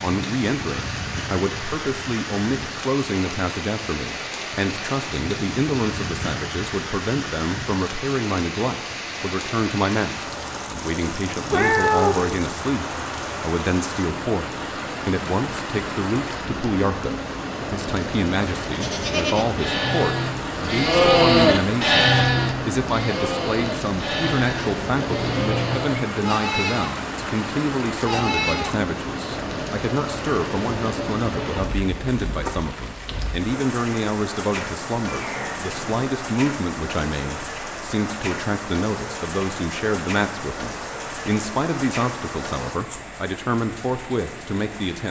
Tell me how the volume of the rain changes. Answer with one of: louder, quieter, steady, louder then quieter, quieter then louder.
steady.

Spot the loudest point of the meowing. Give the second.
12 s.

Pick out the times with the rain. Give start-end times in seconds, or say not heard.
0.0-45.0.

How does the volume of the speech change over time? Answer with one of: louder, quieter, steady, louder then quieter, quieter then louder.
steady.